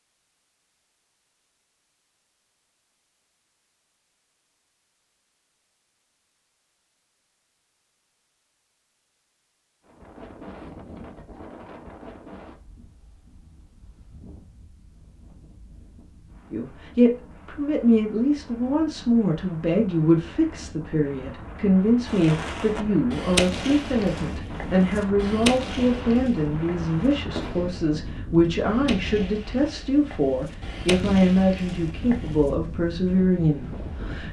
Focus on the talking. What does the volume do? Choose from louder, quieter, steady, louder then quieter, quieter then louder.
steady.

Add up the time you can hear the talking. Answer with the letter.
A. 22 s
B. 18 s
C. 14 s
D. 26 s
B.